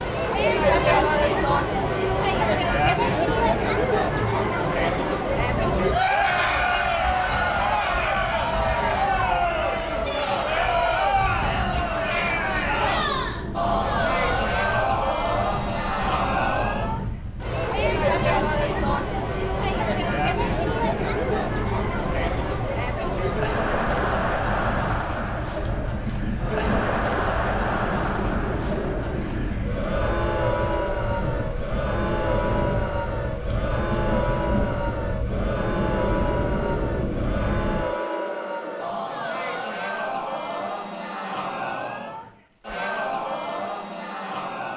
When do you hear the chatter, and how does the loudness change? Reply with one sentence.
The chatter can be heard from 0.0 to 44.7 s, getting quieter.